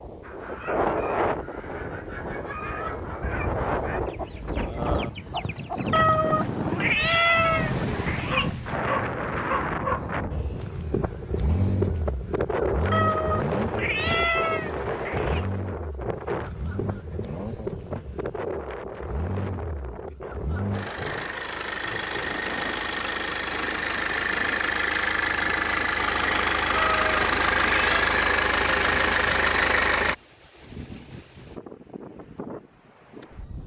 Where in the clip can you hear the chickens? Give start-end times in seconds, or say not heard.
0.2-6.0.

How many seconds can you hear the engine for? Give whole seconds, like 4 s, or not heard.
20 s.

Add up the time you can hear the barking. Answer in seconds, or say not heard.
2 s.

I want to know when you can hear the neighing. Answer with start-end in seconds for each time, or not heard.
not heard.